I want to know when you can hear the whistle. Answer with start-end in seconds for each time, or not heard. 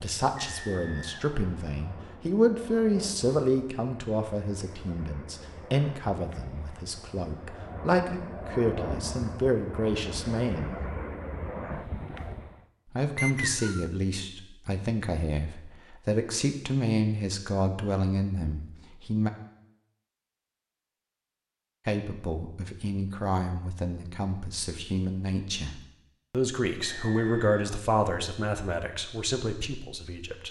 0.3-2.0, 13.2-13.9, 26.8-27.8.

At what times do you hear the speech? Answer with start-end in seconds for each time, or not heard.
0.0-10.8, 12.9-19.3, 21.9-30.4.